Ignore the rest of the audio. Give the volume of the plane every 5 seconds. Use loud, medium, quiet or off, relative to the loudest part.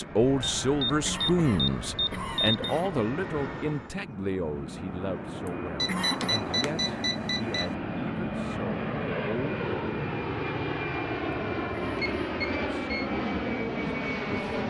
medium, loud, loud.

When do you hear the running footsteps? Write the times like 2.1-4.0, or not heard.
not heard.